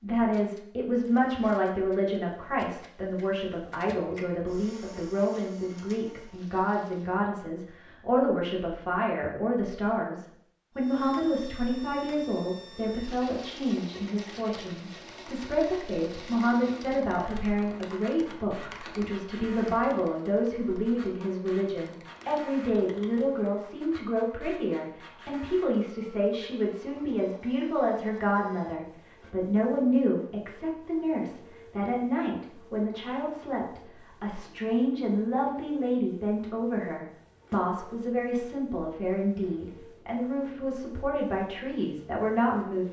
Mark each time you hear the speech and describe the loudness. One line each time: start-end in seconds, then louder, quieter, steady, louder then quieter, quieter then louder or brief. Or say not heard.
0.0-42.8 steady.